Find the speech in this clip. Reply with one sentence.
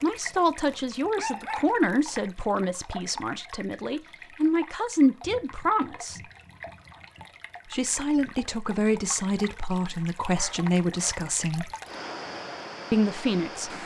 You can hear the speech from 0.0 to 6.2 s, from 7.7 to 11.7 s and from 12.9 to 13.7 s.